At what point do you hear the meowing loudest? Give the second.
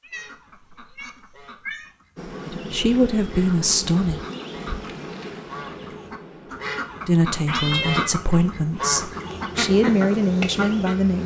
8 s.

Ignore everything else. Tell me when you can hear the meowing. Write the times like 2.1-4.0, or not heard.
0.0-1.9, 7.5-8.2.